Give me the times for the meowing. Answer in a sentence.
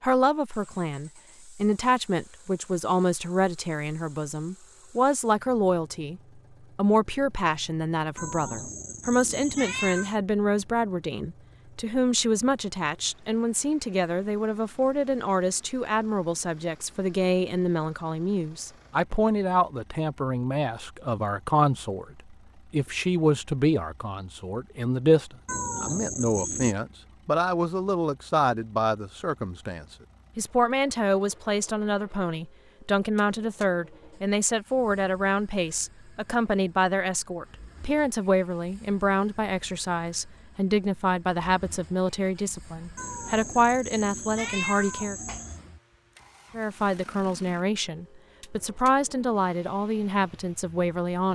You can hear the meowing from 8.2 to 10.2 s, from 25.4 to 26.8 s and from 43.0 to 45.6 s.